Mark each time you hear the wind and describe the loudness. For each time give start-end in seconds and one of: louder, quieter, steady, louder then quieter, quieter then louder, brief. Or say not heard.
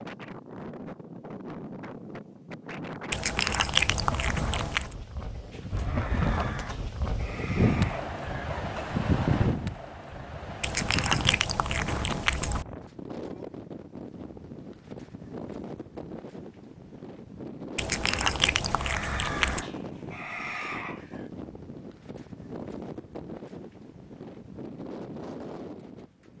0.0-26.3 louder then quieter.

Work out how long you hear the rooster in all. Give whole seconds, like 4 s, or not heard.
6 s.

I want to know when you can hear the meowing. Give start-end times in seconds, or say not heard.
3.1-5.0, 10.6-12.7, 17.8-19.6.